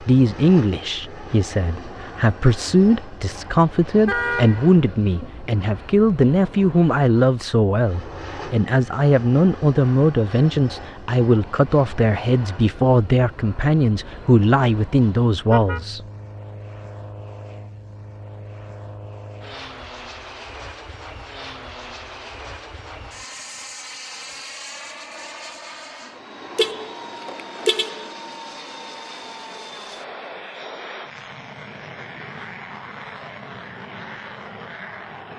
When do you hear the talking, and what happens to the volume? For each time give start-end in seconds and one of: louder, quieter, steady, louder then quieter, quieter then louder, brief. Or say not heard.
0.0-16.0 steady.